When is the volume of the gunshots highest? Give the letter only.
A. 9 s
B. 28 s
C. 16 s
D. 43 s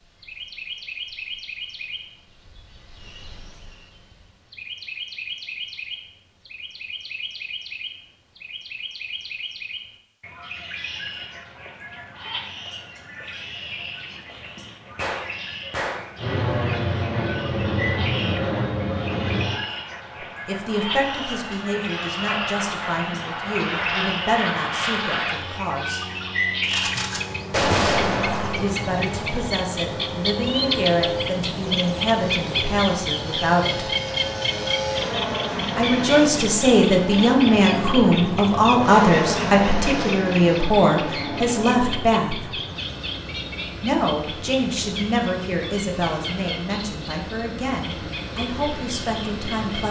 B.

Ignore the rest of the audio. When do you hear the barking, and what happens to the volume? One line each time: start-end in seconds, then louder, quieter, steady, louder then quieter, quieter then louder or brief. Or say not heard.
not heard.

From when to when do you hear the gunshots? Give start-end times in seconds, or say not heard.
14.9-16.1, 26.6-28.6.